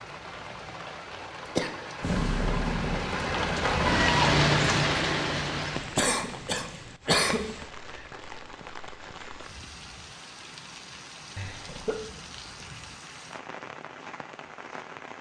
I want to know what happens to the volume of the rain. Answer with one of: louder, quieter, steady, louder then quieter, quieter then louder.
louder then quieter.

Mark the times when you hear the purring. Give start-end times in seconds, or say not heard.
2.0-4.8.